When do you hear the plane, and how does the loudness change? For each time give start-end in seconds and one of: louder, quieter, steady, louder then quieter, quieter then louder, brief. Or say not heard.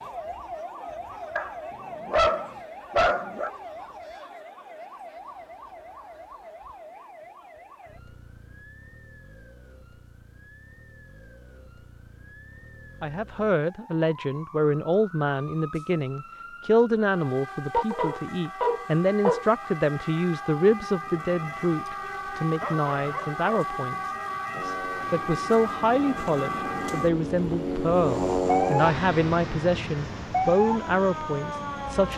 24.5-32.1 louder then quieter.